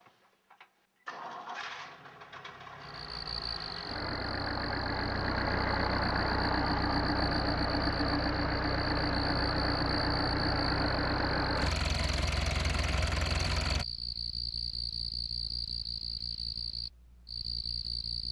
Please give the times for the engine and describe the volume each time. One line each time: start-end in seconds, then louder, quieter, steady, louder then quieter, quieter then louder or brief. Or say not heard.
0.0-13.8 louder.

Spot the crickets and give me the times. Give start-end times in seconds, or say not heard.
2.8-18.2.